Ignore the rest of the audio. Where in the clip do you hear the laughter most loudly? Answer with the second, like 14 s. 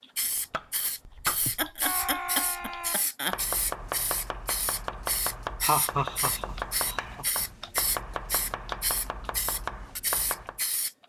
6 s.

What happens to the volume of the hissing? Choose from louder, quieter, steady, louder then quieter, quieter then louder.
steady.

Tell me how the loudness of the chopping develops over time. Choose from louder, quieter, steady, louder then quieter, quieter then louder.
steady.